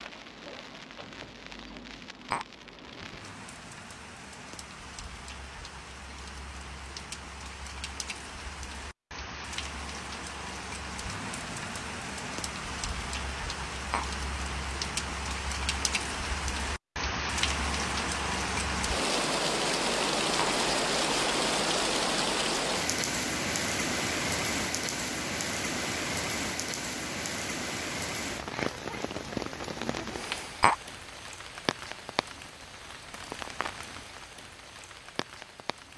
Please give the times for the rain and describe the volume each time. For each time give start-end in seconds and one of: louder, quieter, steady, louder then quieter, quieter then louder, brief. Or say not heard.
0.0-35.9 louder then quieter.